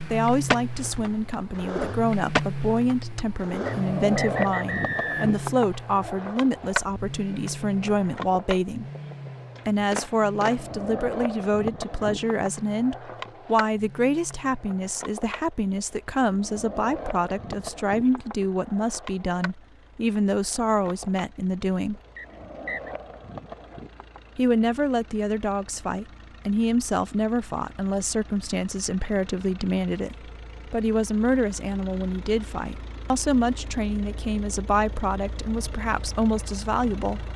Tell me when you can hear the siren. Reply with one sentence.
The siren can't be heard in this clip.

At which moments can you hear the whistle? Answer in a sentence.
The whistle can be heard from 3.6 to 5.3 s and from 22.1 to 22.9 s.